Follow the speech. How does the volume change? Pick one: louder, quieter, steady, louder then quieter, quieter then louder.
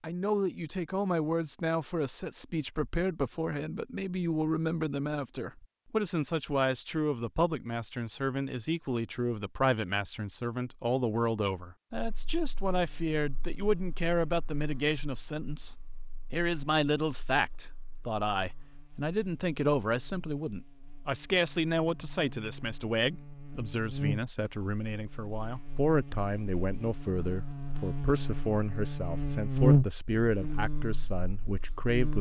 steady.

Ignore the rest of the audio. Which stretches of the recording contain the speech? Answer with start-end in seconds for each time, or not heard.
0.0-32.1.